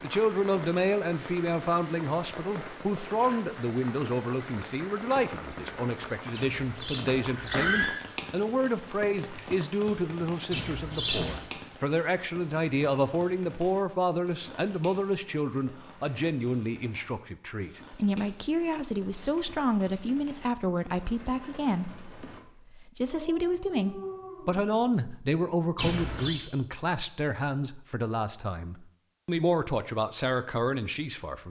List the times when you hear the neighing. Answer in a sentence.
You can hear the neighing from 6.3 to 8.0 s, from 10.5 to 11.4 s and from 25.8 to 26.4 s.